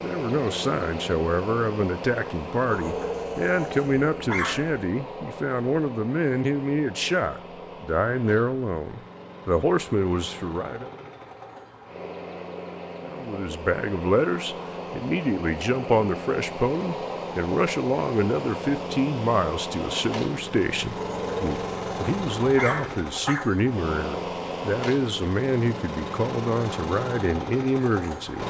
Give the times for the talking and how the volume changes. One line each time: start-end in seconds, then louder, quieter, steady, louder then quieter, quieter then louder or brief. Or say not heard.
0.0-10.9 steady
13.1-28.4 steady.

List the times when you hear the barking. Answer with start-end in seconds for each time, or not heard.
2.6-4.8, 20.9-23.4.